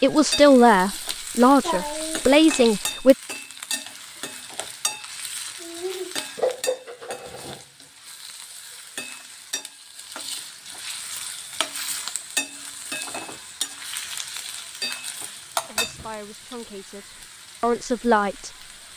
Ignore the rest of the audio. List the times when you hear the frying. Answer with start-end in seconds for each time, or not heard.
0.0-18.9.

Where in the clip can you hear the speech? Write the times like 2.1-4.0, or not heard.
0.0-3.1, 15.7-18.9.